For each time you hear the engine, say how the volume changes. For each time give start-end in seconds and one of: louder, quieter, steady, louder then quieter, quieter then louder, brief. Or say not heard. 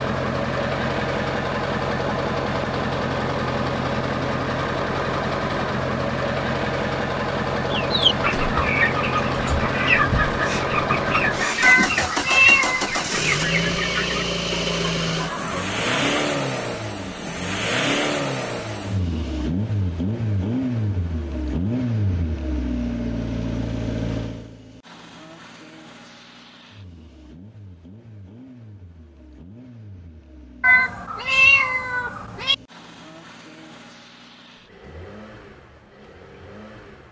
0.0-37.0 quieter.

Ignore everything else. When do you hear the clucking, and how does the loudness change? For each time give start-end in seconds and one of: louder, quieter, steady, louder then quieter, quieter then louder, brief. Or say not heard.
7.7-16.1 quieter.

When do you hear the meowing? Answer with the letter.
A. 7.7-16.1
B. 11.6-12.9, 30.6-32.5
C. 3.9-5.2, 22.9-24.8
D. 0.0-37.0
B.